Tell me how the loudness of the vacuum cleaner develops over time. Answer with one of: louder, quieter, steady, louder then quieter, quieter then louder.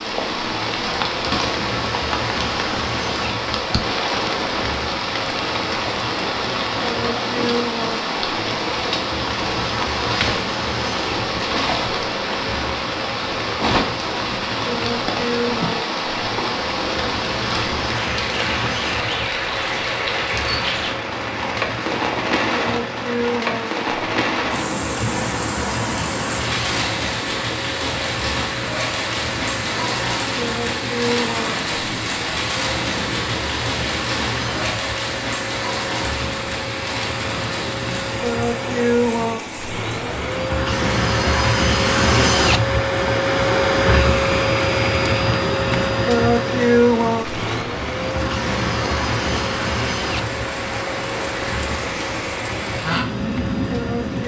louder.